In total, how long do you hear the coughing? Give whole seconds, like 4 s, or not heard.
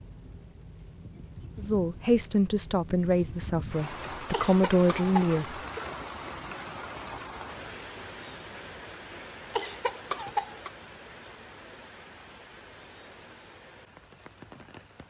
3 s.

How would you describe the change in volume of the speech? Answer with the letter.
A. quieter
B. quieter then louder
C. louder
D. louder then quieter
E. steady
B.